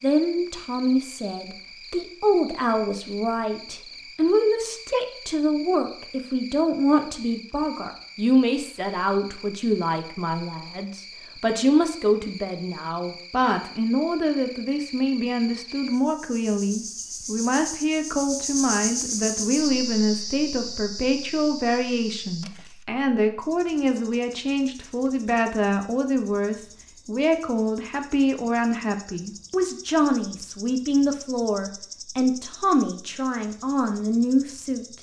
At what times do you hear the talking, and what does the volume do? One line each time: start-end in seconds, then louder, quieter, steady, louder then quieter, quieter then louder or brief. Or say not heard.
0.0-34.9 steady.